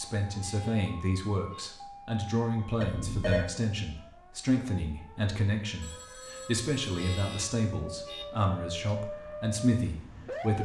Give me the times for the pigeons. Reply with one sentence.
You can't hear the pigeons here.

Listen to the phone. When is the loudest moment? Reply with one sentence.
The loudest moment of the phone is at 3 seconds.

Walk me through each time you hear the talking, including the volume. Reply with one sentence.
The talking can be heard from 0.0 to 10.5 s, at a steady volume.